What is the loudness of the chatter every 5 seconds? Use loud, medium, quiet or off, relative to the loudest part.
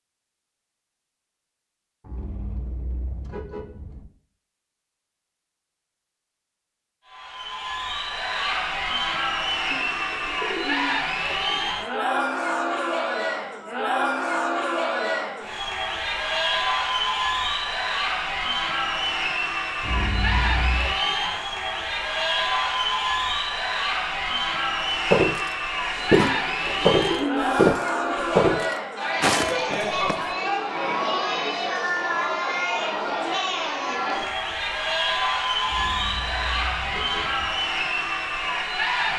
off, loud, loud, loud, loud, loud, loud, loud.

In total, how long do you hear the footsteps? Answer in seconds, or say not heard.
5 s.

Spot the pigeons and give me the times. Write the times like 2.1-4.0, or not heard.
9.7-11.7, 26.2-28.2.